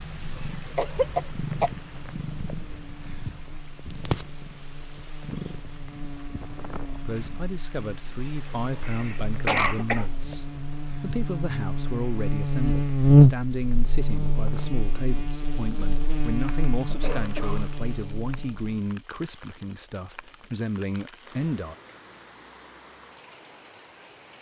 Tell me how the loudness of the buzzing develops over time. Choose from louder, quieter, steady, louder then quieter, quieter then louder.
louder then quieter.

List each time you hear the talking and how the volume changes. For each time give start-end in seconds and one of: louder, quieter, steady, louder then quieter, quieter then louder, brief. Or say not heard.
7.0-21.8 steady.